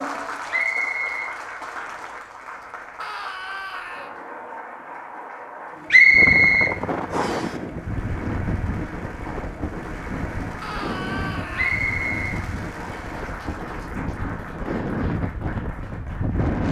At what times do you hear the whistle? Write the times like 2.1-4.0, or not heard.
0.5-1.3, 5.9-7.5, 11.6-13.1.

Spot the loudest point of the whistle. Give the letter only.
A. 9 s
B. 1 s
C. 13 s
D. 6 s
D.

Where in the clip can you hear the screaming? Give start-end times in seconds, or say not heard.
3.0-4.2, 10.6-11.8.